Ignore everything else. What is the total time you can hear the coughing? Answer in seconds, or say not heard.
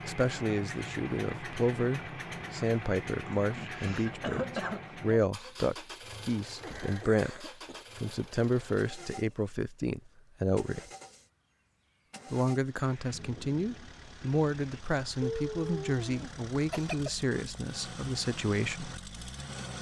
5 s.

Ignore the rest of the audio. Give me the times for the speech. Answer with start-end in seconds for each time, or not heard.
0.0-10.8, 12.3-18.9.